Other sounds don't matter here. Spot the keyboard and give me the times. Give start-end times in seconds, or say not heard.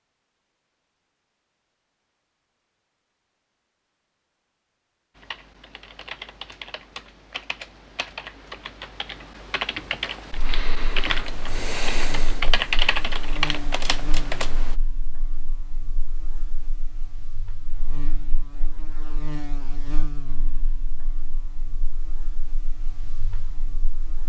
5.2-14.8.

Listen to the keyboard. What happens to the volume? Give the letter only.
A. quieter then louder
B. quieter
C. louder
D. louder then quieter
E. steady
C.